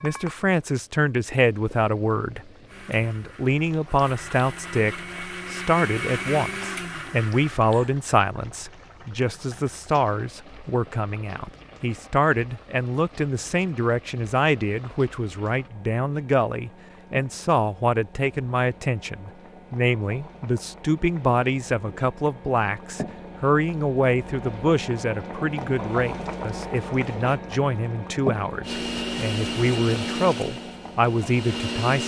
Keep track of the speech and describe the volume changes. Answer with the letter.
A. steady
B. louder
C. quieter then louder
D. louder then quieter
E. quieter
A.